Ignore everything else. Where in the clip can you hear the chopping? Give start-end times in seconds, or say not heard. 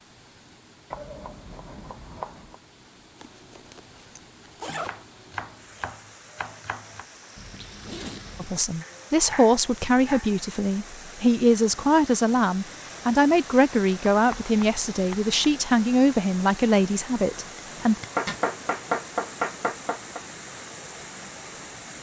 0.9-2.5, 4.7-7.0, 8.8-10.8, 14.1-15.3, 18.1-20.2.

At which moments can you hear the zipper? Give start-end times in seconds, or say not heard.
3.2-5.0, 7.3-8.7, 17.6-18.4.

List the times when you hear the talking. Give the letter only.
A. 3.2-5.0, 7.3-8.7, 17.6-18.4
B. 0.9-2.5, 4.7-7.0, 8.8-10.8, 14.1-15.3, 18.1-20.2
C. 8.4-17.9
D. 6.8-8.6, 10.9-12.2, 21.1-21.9
C.